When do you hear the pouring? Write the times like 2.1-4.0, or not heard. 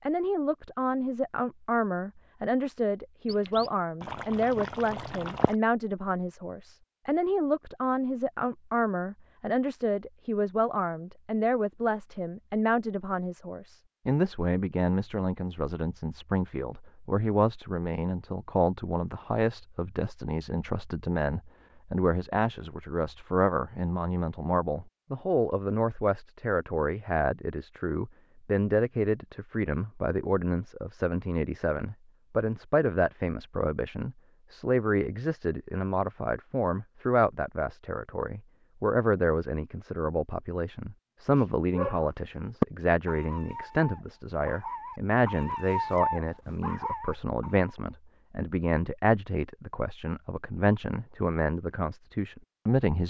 3.2-5.5.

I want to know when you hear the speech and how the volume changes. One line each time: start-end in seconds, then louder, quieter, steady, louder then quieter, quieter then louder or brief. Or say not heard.
0.1-53.0 steady.